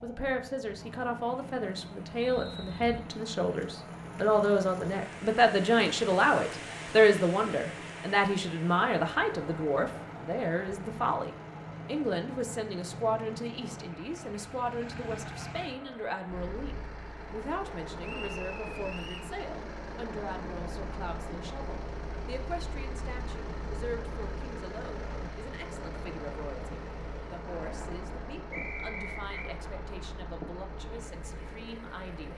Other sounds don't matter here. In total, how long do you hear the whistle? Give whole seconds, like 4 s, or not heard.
3 s.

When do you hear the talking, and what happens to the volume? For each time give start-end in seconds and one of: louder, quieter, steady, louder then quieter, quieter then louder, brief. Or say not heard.
0.0-32.3 quieter.